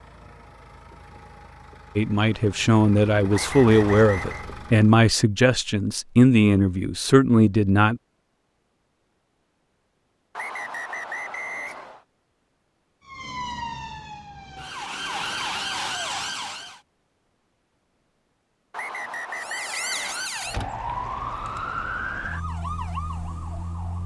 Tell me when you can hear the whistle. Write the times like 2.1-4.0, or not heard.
3.3-4.5, 10.3-12.1, 18.7-20.3.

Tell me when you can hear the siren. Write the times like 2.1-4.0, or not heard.
13.1-16.8, 19.3-24.0.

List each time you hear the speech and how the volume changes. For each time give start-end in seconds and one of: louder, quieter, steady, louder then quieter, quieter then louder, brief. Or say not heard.
1.9-8.0 steady.